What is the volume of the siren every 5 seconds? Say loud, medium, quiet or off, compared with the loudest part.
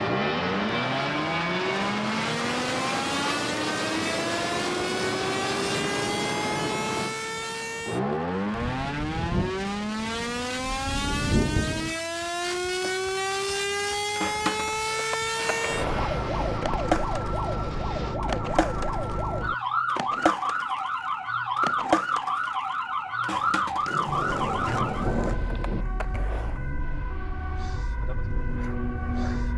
loud, loud, loud, loud, loud, medium.